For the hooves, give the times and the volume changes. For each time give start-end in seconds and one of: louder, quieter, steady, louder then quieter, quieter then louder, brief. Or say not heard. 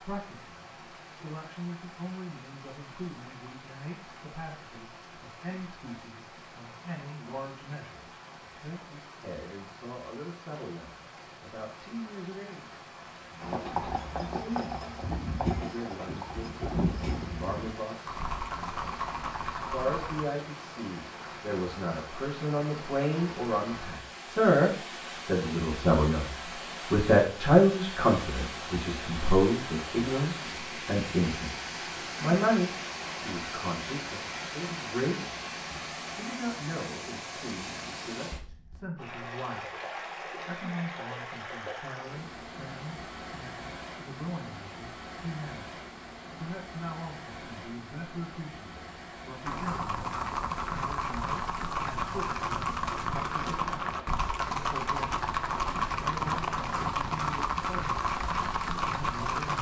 13.4-20.2 steady
49.5-59.5 steady.